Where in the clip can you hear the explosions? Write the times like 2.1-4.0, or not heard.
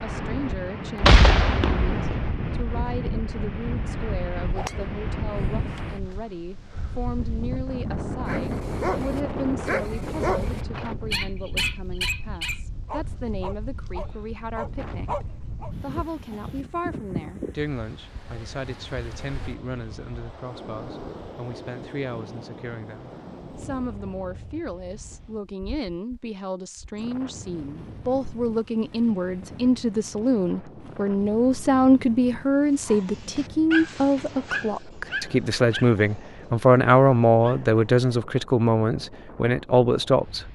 1.0-2.3.